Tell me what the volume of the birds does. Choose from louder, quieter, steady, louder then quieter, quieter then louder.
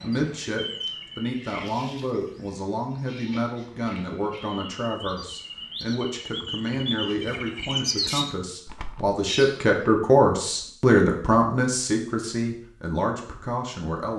quieter then louder.